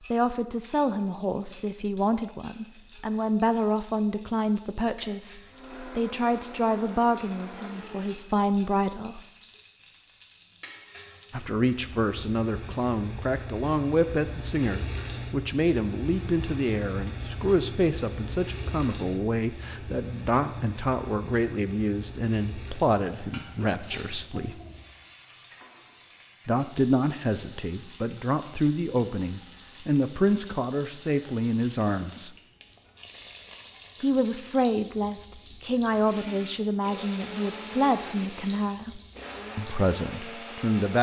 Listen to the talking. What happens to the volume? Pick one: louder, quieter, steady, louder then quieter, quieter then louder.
steady.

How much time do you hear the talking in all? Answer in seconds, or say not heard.
35 s.